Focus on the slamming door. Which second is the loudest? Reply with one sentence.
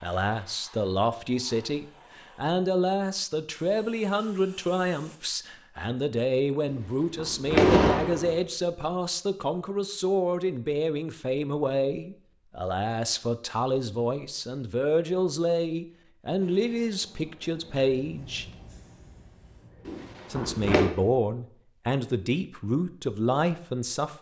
The loudest moment of the slamming door is at 8 seconds.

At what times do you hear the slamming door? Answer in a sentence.
The slamming door can be heard from 6.7 to 8.4 s and from 19.9 to 20.9 s.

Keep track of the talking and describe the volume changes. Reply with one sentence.
The volume of the talking stays about the same.